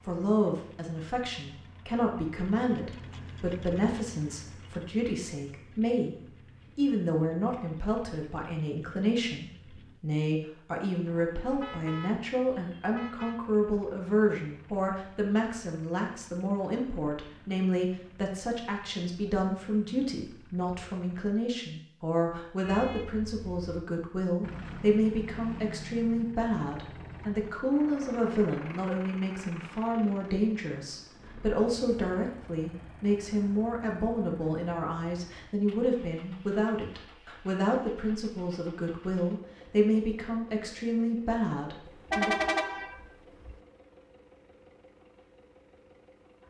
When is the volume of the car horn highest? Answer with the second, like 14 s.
42 s.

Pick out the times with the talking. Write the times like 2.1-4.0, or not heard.
0.1-6.2, 6.8-42.4.